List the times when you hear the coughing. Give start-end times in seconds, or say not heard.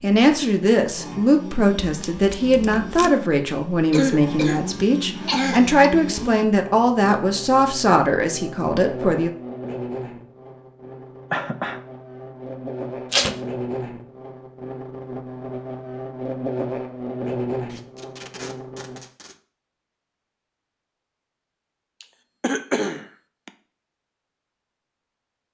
3.9-5.8, 11.3-11.8, 22.0-23.5.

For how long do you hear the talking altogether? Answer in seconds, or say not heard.
9 s.